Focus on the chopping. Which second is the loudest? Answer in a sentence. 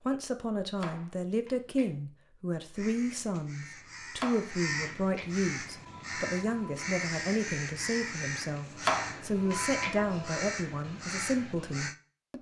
The volume of the chopping peaks at 9 seconds.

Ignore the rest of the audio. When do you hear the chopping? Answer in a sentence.
The chopping can be heard from 0.8 to 1.9 s, from 4.2 to 5.3 s and from 8.8 to 9.9 s.